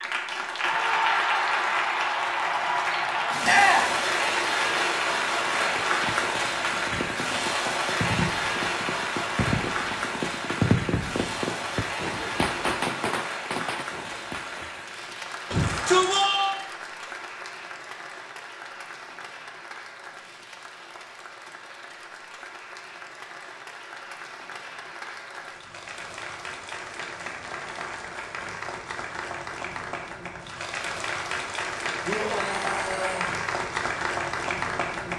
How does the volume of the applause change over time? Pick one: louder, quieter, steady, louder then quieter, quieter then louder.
quieter then louder.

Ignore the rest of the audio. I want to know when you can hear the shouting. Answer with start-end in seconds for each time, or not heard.
3.4-4.0, 15.5-16.6, 32.0-33.4.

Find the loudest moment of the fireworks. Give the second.
11 s.